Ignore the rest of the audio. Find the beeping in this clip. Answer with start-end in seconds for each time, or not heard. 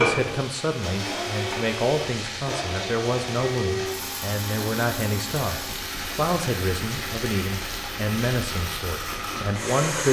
not heard.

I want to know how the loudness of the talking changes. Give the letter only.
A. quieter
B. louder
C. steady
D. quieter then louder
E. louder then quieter
C.